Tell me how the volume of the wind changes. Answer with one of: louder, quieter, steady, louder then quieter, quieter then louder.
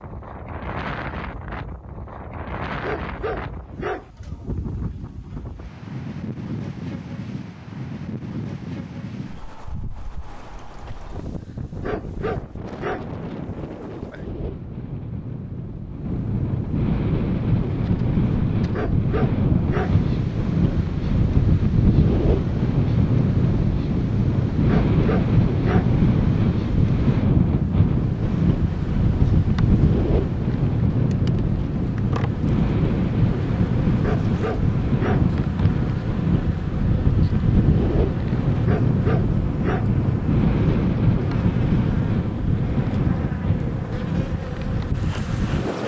louder.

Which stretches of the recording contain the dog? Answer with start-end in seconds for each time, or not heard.
2.8-4.1, 11.8-13.1, 18.7-20.0, 24.6-25.9, 34.0-35.3, 38.6-40.0.